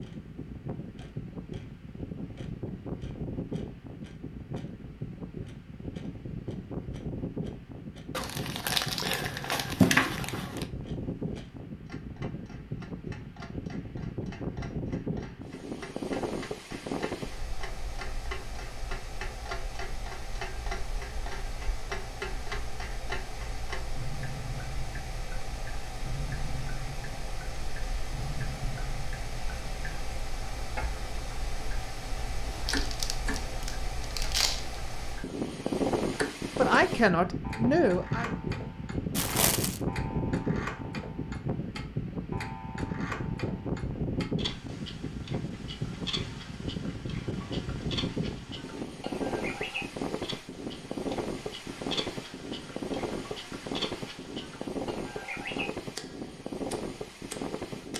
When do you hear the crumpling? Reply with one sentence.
You can hear the crumpling from 8.1 to 10.7 s, from 32.6 to 34.6 s and from 39.1 to 39.8 s.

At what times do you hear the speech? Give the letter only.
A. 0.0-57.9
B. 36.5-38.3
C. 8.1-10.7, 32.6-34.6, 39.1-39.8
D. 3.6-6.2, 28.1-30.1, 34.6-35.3
B.